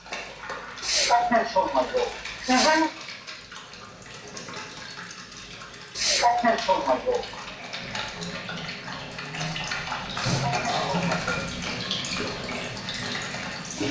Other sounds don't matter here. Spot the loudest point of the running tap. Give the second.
11 s.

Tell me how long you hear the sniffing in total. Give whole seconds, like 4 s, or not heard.
5 s.